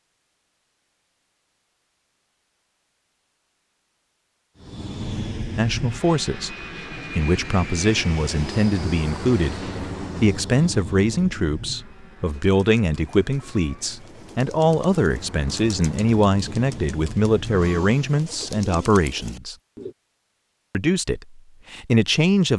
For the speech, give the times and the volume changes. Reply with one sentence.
The speech can be heard briefly from 5.5 to 6.5 s; from 7.2 to 19.6 s, at a steady volume; and briefly from 20.7 to 22.5 s.